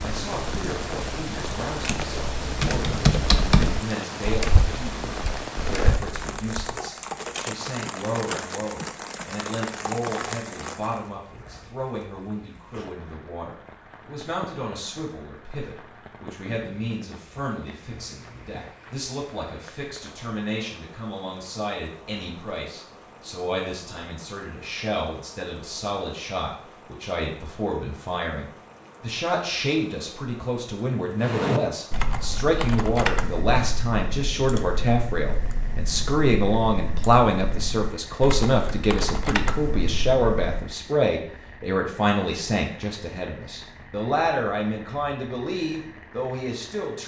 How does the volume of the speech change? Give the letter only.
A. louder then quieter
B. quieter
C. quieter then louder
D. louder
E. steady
D.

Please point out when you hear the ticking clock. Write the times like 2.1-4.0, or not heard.
not heard.